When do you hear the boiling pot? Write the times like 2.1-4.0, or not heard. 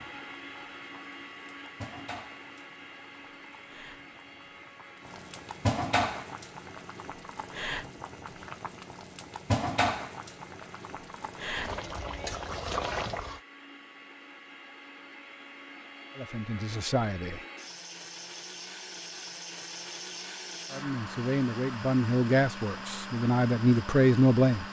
0.0-13.4.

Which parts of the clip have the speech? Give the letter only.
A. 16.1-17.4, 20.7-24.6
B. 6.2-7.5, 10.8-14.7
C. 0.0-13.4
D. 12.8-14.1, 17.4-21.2
A.